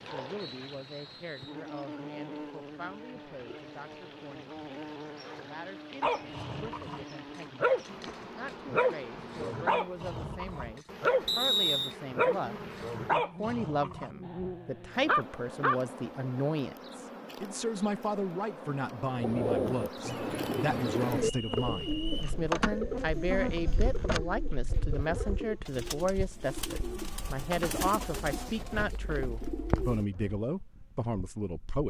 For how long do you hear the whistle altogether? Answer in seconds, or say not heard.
3 s.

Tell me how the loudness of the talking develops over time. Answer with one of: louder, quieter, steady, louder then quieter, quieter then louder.
louder.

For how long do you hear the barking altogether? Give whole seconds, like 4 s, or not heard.
10 s.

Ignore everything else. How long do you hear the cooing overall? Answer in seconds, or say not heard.
11 s.